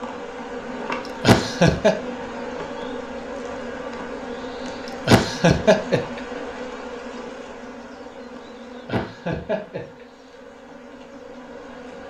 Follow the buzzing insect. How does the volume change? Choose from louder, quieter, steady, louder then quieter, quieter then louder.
quieter.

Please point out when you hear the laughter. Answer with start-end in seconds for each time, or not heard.
1.2-1.9, 5.0-6.2, 8.8-10.1.